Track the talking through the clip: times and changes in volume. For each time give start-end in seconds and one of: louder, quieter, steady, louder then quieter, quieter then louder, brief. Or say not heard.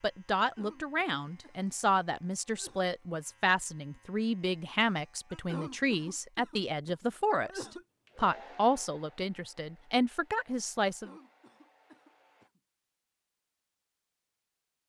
0.0-11.1 steady.